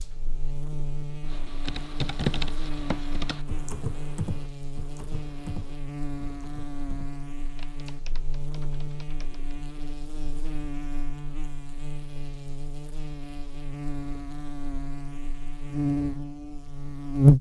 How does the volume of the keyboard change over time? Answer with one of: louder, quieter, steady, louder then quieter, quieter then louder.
quieter.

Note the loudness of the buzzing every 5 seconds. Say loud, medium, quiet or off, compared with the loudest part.
quiet, quiet, quiet, loud.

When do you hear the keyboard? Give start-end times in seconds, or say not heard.
1.2-9.4.